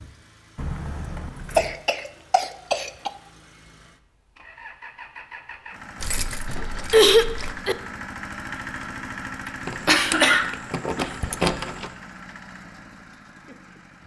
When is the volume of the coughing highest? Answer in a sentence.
The volume of the coughing peaks at 7 seconds.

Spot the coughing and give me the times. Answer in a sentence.
The coughing can be heard from 1.6 to 3.1 s, from 6.5 to 7.8 s and from 9.8 to 11.1 s.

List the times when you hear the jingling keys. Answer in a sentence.
The jingling keys can be heard from 0.6 to 1.8 s, from 6.0 to 7.5 s and from 9.7 to 11.9 s.